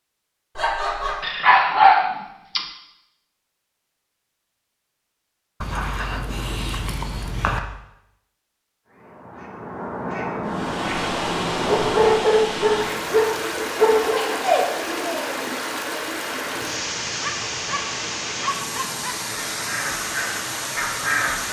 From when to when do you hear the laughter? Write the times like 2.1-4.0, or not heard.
0.6-1.2, 13.8-15.3.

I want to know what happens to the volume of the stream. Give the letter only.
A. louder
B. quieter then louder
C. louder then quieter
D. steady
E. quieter
D.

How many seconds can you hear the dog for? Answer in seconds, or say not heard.
9 s.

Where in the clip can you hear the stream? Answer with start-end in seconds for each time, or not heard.
10.4-21.4.